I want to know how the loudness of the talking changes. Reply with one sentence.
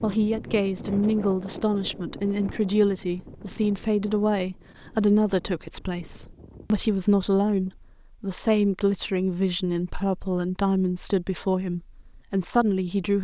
The loudness of the talking stays about the same.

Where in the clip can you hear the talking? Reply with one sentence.
You can hear the talking from 0.0 to 13.1 s.